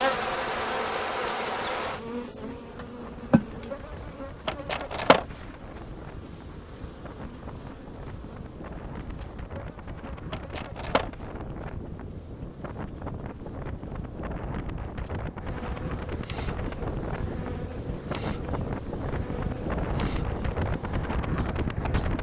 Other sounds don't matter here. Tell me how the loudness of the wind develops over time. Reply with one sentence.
The volume of the wind goes up.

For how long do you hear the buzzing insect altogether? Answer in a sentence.
You can hear the buzzing insect for 22 seconds altogether.